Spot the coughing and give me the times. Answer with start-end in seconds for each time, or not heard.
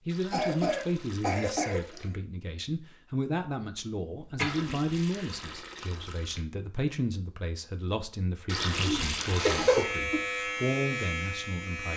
0.2-2.1, 4.2-5.5, 8.8-10.2.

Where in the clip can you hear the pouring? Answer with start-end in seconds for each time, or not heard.
0.1-2.1, 4.4-6.5, 8.4-9.8.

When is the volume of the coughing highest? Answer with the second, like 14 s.
10 s.